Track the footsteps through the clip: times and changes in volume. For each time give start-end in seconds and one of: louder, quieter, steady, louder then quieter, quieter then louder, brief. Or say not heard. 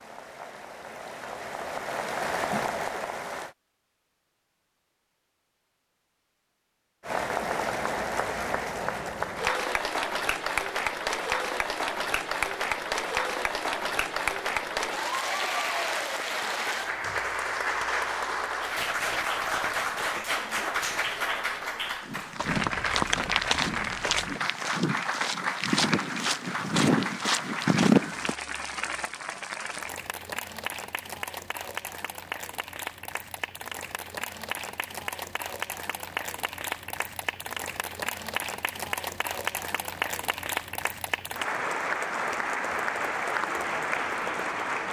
22.0-28.4 louder.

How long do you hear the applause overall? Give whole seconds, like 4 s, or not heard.
41 s.